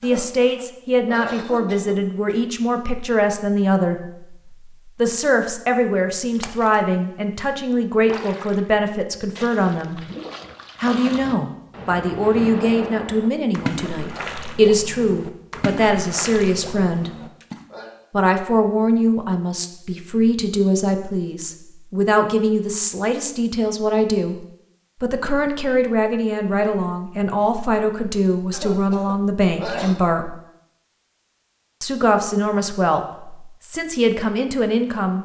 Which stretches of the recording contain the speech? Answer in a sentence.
You can hear the speech from 0.0 to 4.2 s, from 5.0 to 10.0 s, from 10.8 to 17.1 s, from 18.1 to 24.4 s, from 25.0 to 30.4 s and from 31.8 to 35.2 s.